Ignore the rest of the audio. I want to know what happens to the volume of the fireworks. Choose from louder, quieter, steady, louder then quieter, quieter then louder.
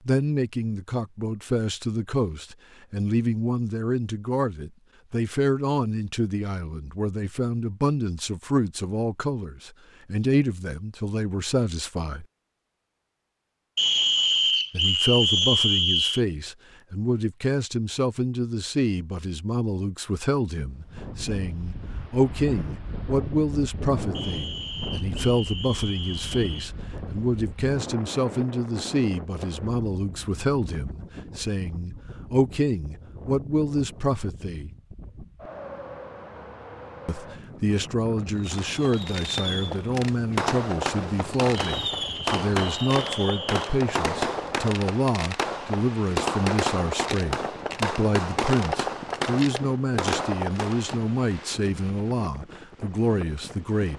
steady.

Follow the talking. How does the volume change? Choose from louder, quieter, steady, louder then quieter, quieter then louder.
steady.